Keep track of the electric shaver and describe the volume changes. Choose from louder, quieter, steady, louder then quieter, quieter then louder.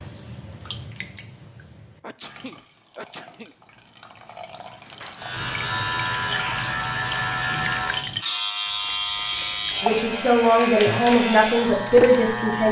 steady.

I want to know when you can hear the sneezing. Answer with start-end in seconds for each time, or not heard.
2.0-3.5.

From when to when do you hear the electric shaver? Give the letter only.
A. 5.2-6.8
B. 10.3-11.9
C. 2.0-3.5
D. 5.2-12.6
D.